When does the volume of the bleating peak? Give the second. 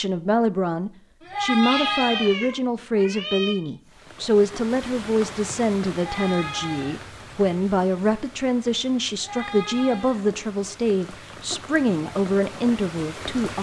2 s.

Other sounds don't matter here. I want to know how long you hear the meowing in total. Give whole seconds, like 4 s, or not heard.
2 s.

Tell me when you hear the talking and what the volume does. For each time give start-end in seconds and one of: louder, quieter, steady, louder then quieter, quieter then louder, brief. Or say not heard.
0.0-13.5 steady.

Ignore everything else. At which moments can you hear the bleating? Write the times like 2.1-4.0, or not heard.
1.2-2.3, 5.9-7.0, 9.2-10.2.